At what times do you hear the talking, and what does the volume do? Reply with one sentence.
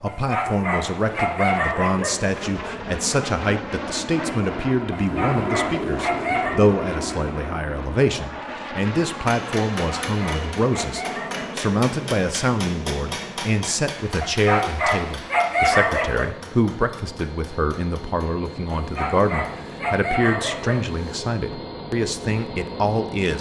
You can hear the talking from 0.0 to 23.3 s, at a steady volume.